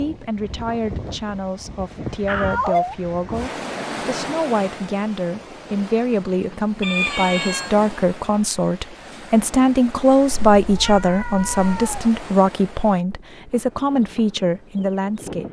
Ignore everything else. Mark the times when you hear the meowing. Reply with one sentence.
You can hear the meowing from 2.2 to 3.0 s, from 6.8 to 7.7 s and from 10.3 to 12.1 s.